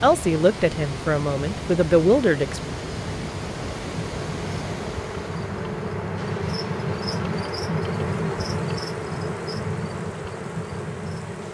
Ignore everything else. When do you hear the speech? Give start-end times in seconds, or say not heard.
0.0-2.6.